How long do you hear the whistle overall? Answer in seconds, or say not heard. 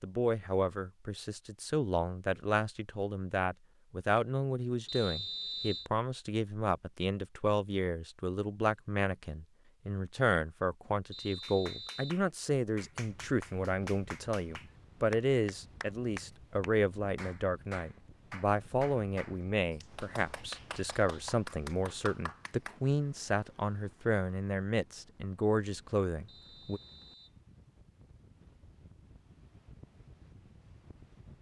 3 s.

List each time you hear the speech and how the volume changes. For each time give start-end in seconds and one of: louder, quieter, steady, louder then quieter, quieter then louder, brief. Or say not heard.
0.0-26.8 steady.